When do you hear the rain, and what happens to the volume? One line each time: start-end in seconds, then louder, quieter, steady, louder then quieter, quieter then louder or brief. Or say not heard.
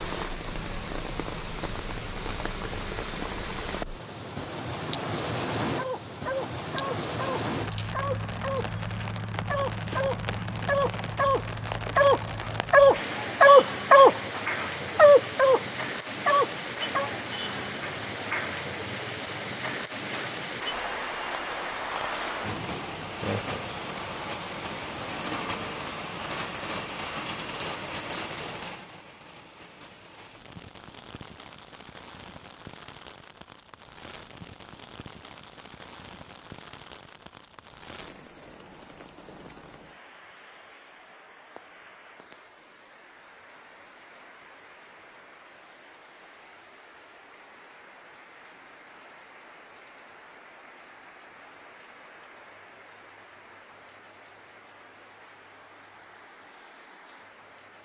0.0-57.8 quieter.